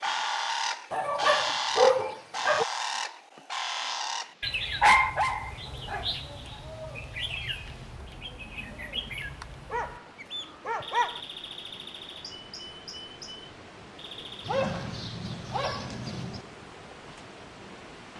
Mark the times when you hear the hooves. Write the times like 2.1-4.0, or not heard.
not heard.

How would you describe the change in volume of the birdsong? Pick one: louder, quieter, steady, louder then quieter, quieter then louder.
quieter.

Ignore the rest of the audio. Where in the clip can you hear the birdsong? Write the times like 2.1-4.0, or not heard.
0.0-14.5.